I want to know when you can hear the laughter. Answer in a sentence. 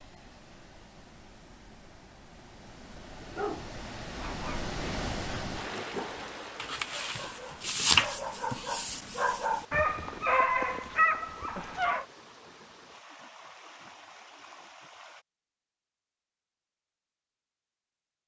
The laughter can't be heard in this clip.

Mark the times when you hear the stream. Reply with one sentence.
You can hear the stream from 0.0 to 15.2 s.